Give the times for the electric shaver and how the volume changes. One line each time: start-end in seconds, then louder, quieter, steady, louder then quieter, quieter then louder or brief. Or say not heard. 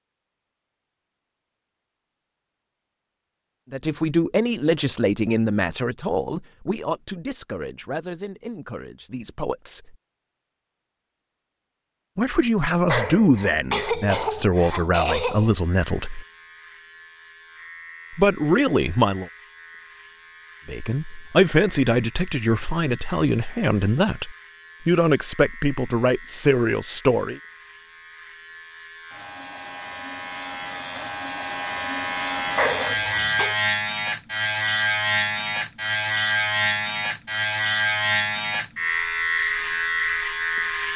15.4-40.9 louder.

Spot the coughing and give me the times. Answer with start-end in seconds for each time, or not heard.
12.8-15.6, 32.5-33.5.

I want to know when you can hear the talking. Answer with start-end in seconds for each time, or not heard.
3.7-9.9, 12.2-16.2, 18.1-19.3, 20.6-27.4.